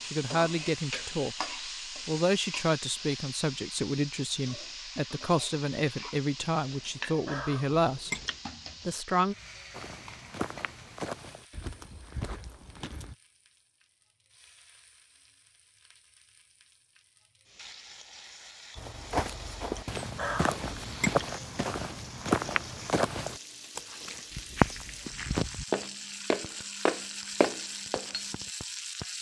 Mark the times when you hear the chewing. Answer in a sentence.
You can hear the chewing from 6.4 to 8.4 s and from 19.3 to 21.2 s.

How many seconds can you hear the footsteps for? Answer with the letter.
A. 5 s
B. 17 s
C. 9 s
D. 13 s
D.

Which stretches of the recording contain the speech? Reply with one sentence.
The speech can be heard from 0.0 to 1.4 s, from 2.0 to 8.2 s and from 8.8 to 9.3 s.